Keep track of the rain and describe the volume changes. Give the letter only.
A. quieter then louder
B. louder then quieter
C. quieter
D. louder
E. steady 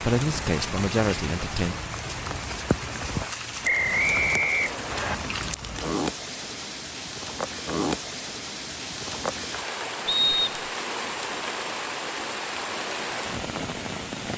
E.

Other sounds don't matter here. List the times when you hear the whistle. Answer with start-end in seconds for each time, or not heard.
3.6-5.2, 10.1-10.7.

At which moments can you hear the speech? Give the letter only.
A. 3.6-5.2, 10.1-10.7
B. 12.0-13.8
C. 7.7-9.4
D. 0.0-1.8
D.